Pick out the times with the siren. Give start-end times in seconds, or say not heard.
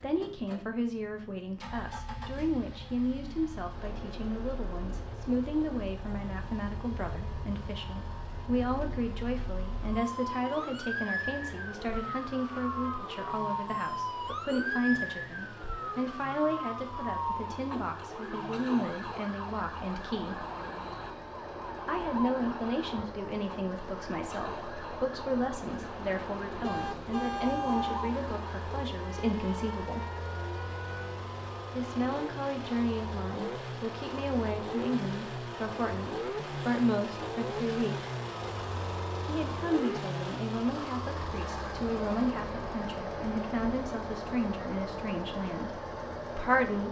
1.6-31.2.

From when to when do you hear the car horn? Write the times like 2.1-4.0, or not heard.
26.6-28.1.